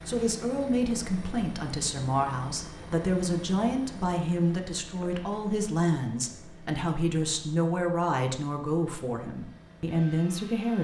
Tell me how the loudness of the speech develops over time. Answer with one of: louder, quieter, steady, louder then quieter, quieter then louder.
steady.